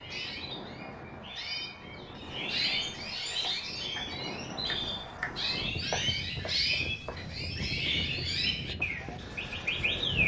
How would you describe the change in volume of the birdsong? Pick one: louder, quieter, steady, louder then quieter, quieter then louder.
louder.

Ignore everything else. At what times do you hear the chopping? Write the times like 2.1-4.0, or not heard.
3.1-7.2.